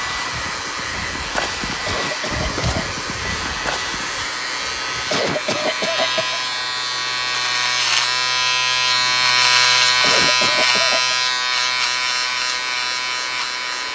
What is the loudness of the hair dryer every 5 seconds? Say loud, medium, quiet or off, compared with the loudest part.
loud, medium, medium.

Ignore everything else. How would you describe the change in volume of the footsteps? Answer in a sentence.
The volume of the footsteps goes up, then down.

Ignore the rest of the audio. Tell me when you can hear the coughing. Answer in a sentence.
The coughing can be heard from 1.9 to 2.6 s, from 5.1 to 6.4 s and from 10.0 to 11.2 s.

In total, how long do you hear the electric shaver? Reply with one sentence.
The electric shaver can be heard for 14 seconds in total.